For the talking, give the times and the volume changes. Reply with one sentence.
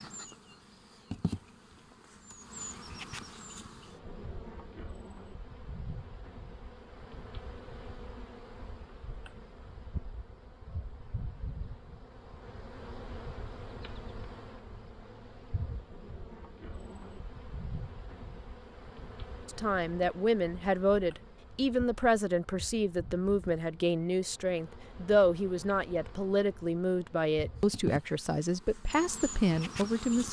You can hear the talking from 19.4 to 30.2 s, at a steady volume.